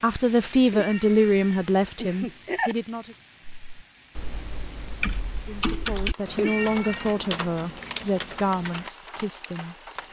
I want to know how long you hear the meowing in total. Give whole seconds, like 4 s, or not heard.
3 s.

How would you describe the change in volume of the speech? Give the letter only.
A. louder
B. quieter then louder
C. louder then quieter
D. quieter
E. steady
D.